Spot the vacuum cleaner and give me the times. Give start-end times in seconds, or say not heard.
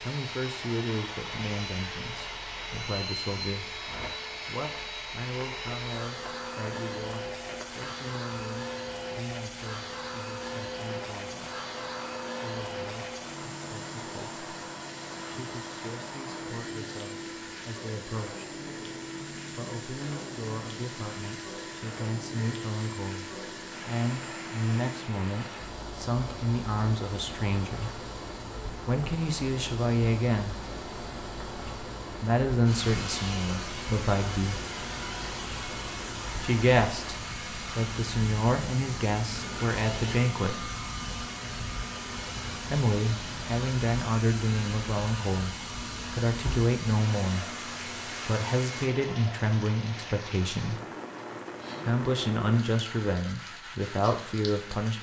0.0-48.9.